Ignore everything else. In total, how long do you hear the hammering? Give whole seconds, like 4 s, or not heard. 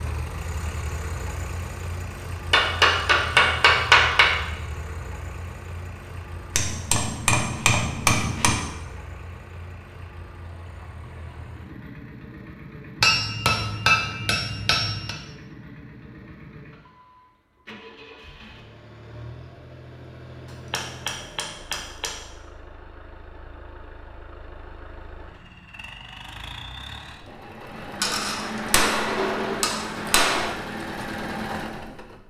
10 s.